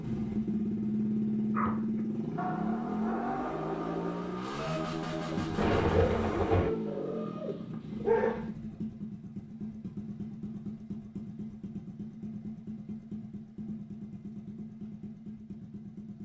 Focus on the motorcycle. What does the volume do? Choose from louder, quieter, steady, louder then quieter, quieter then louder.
quieter.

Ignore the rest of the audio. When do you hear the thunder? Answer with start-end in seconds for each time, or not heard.
5.3-6.7.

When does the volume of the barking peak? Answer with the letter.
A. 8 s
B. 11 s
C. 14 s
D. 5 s
A.